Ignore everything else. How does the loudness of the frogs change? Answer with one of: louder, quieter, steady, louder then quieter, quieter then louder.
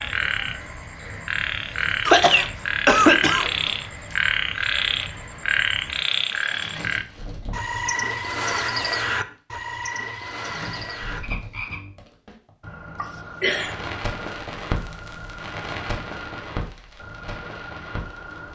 quieter.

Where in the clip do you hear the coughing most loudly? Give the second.
3 s.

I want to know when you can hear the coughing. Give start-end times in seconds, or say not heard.
2.0-3.6, 12.9-13.8.